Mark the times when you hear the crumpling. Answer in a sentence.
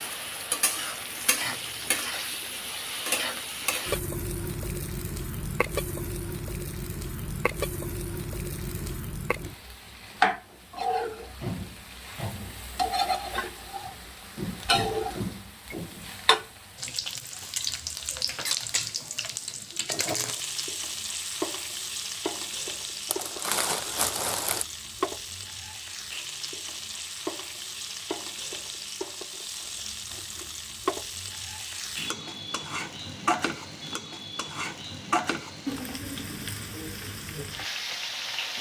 The crumpling can be heard from 23.1 to 24.6 s.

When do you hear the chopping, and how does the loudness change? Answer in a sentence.
The chopping can't be heard in this clip.